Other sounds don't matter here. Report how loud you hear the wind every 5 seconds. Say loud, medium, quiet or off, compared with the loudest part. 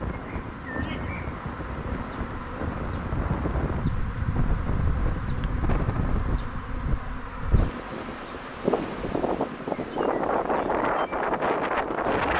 medium, medium, loud.